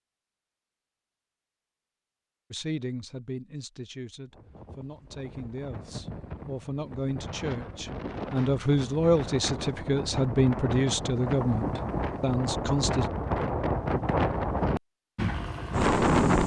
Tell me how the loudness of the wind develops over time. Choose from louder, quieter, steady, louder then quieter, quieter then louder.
louder.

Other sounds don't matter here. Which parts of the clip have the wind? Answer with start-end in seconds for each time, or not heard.
4.3-16.4.